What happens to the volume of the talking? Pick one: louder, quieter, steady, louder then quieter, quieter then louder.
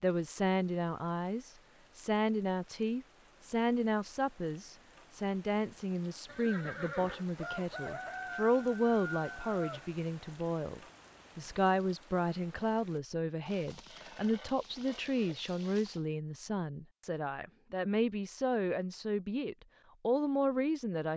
steady.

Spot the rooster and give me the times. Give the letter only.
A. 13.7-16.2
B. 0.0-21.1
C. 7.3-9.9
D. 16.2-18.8
C.